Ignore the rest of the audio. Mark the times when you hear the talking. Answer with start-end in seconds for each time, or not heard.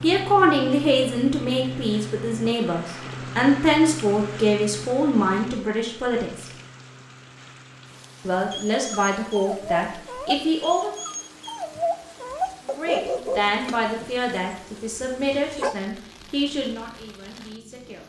0.0-6.5, 8.2-10.9, 12.6-18.0.